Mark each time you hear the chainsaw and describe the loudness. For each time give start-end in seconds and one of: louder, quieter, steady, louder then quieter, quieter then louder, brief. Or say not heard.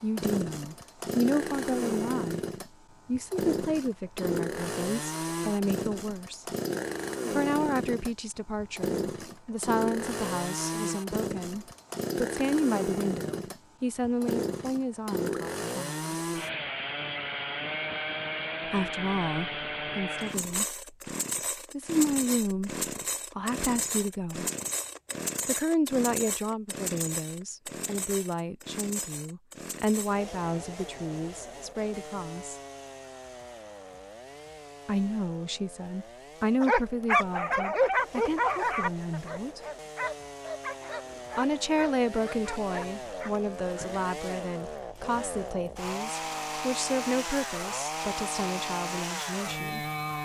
0.0-50.1 quieter then louder.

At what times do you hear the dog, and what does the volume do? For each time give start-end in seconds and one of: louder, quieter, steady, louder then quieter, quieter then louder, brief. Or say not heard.
36.6-44.0 quieter.